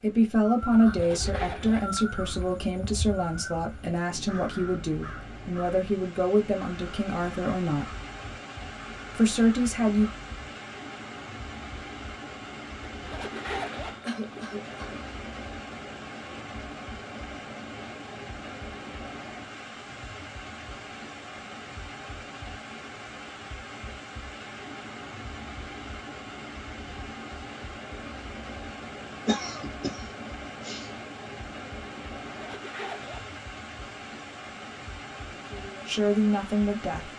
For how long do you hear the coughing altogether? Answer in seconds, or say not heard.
3 s.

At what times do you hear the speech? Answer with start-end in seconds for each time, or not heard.
0.0-7.9, 9.2-10.1, 35.4-37.1.